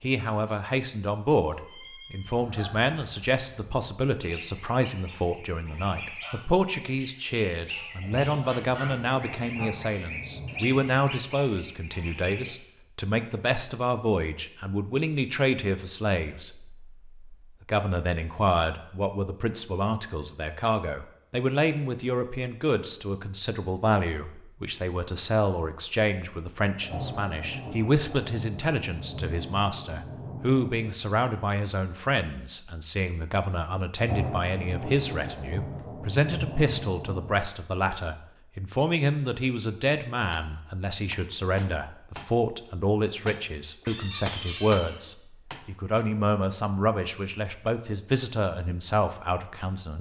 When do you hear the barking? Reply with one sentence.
The barking can't be heard in this clip.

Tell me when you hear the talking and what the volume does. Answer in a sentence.
You can hear the talking from 0.0 to 49.9 s, at a steady volume.